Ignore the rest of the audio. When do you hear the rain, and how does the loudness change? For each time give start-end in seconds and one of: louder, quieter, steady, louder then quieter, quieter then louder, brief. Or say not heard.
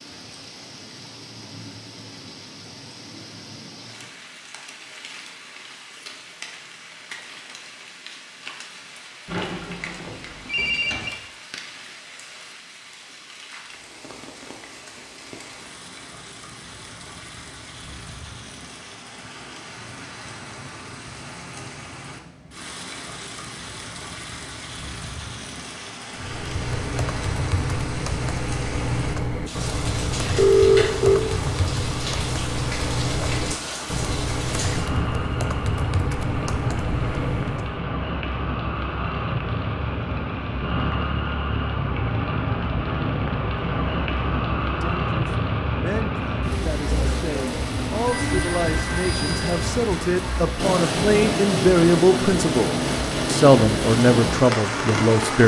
0.0-55.4 louder.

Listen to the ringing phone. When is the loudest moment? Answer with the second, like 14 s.
31 s.